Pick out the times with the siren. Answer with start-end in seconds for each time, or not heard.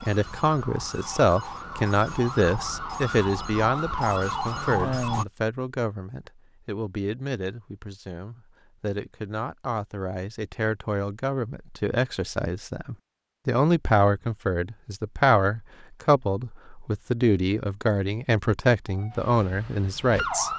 0.0-5.2, 18.9-20.5.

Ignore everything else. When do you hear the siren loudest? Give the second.
5 s.